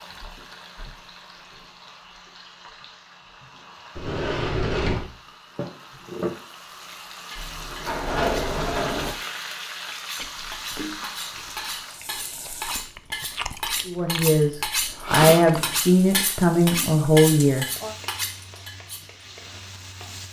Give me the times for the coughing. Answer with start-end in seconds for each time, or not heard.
not heard.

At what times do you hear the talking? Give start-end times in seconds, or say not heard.
13.8-17.9.